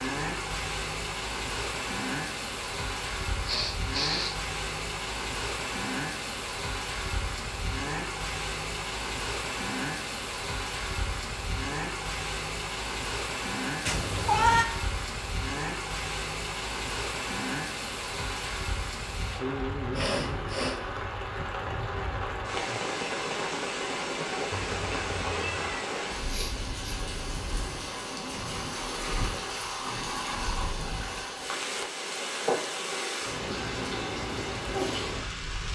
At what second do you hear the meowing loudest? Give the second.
14 s.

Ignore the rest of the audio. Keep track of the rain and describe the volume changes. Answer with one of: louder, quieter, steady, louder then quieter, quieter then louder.
steady.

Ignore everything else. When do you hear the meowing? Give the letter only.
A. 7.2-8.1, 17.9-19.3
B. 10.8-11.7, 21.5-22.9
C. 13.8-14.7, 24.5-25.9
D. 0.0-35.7
C.